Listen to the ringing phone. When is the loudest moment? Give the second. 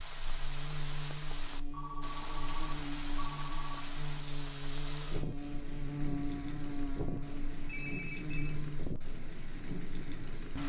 8 s.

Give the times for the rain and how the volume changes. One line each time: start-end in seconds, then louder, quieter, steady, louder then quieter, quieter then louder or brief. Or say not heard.
0.0-10.6 steady.